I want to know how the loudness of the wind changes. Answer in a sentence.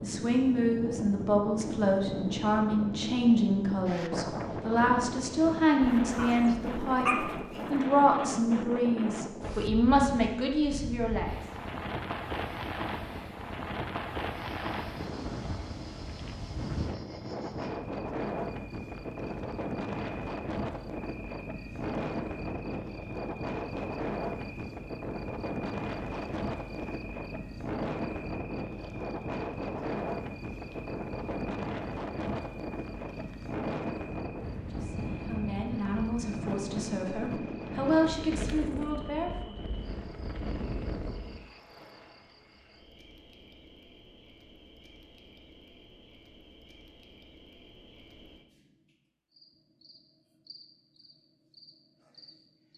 The loudness of the wind stays about the same.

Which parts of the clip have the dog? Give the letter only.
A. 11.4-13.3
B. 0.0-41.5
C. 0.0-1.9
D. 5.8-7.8
D.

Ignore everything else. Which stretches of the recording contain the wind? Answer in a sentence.
The wind can be heard from 0.0 to 41.5 s.